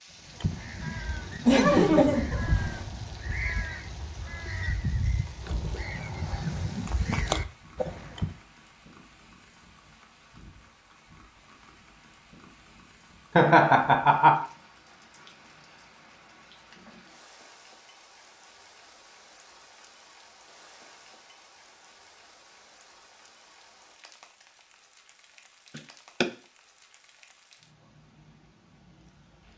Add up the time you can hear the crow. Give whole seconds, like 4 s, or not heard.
8 s.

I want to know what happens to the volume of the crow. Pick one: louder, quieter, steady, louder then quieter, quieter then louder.
louder.